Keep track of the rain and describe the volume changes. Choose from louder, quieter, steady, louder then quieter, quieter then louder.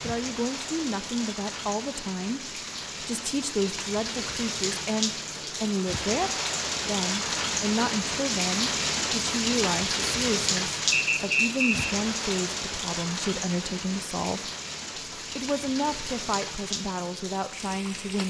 louder then quieter.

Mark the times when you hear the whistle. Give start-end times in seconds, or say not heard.
10.9-11.9.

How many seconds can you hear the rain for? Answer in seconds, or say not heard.
18 s.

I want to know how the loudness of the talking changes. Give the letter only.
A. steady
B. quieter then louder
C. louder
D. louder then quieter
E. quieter
A.